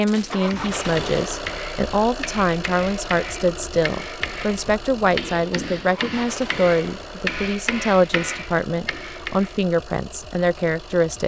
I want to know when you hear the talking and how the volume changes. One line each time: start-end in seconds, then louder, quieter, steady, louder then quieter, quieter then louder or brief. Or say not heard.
0.0-11.2 steady.